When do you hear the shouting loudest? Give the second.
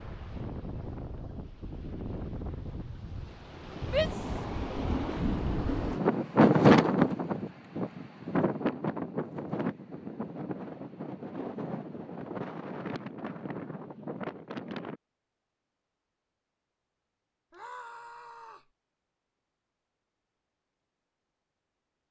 4 s.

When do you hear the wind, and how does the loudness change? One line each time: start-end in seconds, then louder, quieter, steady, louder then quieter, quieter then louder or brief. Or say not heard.
0.0-15.0 louder then quieter.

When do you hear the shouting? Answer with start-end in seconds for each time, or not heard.
3.9-4.3, 17.5-18.7.